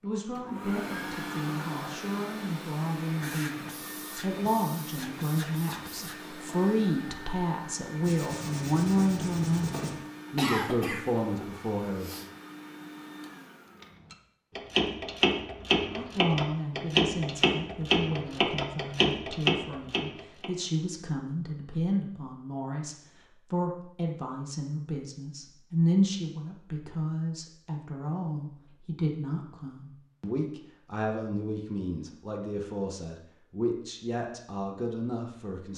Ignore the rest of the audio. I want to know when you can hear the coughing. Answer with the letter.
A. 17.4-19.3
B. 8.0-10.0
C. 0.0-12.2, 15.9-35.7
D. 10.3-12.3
D.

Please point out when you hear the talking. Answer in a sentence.
You can hear the talking from 0.0 to 12.2 s and from 15.9 to 35.7 s.